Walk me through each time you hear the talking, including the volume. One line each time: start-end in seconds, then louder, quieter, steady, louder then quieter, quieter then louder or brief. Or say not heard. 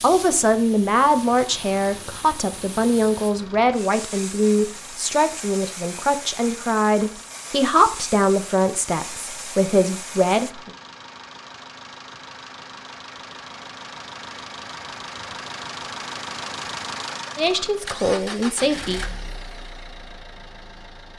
0.0-10.7 steady
17.4-19.0 brief.